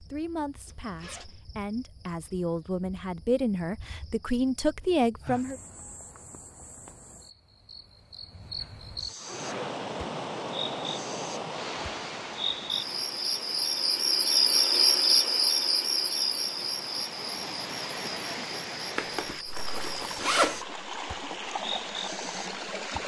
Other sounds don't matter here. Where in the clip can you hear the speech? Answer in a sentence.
You can hear the speech from 0.0 to 5.6 s.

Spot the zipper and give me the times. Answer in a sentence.
You can hear the zipper from 0.7 to 1.4 s, from 8.6 to 9.8 s and from 18.9 to 20.6 s.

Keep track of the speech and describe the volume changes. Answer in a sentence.
The volume of the speech goes up.